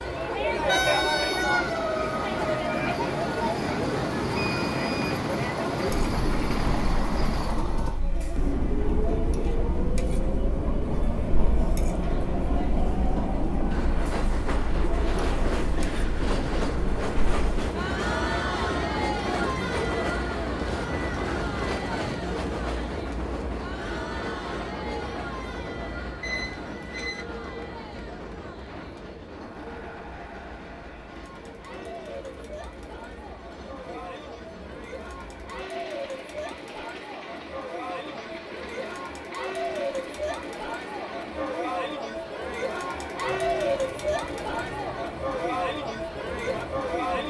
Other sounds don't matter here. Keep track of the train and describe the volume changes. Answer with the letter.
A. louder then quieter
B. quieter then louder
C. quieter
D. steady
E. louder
C.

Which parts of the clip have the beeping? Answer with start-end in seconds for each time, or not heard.
4.3-5.0, 26.2-27.2.